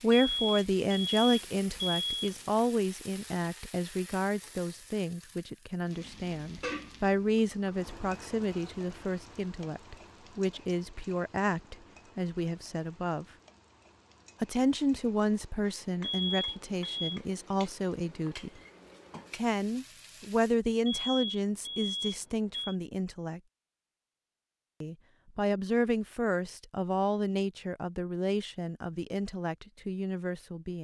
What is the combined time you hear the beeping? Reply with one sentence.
The beeping can be heard for 5 seconds in total.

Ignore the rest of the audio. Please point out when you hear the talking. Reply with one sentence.
You can hear the talking from 0.0 to 13.2 s, from 14.4 to 18.5 s, from 19.3 to 23.4 s and from 24.8 to 30.7 s.